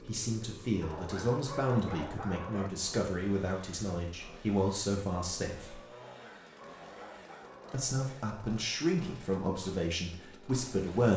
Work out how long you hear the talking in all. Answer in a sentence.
You can hear the talking for 9 seconds altogether.